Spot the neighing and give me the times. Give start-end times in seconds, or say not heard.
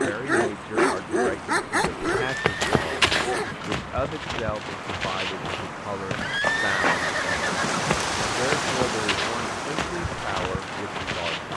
2.0-3.9, 6.2-8.1.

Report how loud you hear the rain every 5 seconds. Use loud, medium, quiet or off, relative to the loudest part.
medium, loud, medium.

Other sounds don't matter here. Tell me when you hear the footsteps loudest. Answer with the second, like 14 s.
3 s.